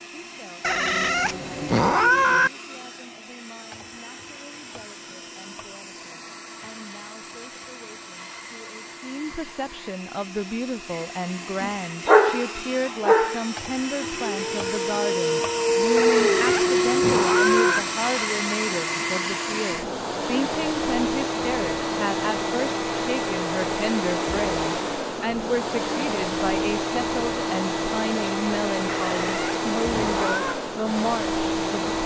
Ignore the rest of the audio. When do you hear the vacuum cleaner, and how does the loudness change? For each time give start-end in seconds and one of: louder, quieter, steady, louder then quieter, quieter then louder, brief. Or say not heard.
0.0-32.0 louder.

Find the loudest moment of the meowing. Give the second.
2 s.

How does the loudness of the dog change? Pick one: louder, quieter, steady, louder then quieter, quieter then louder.
quieter then louder.